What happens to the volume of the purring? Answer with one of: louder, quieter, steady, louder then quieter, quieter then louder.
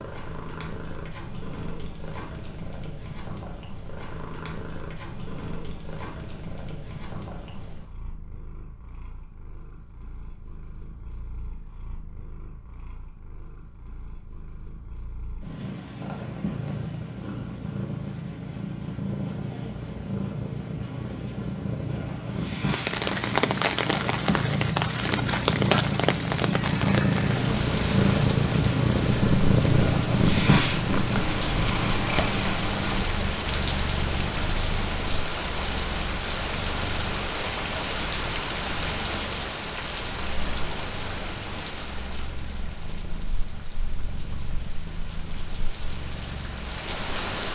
louder then quieter.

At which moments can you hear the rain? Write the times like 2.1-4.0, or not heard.
22.6-47.5.